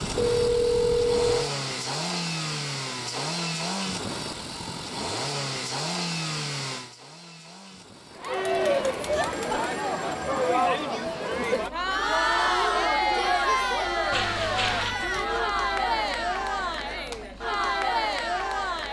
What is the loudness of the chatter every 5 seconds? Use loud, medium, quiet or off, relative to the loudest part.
off, loud, loud, loud.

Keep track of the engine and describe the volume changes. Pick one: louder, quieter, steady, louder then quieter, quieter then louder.
quieter.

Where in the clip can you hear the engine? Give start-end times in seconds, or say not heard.
0.0-18.8.